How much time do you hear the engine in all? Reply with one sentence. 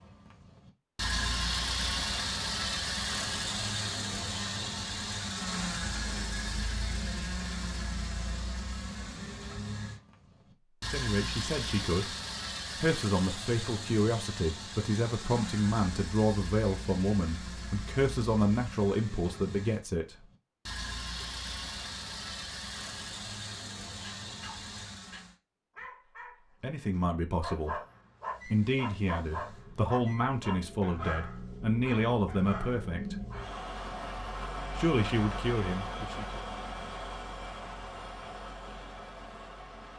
You can hear the engine for 37 seconds altogether.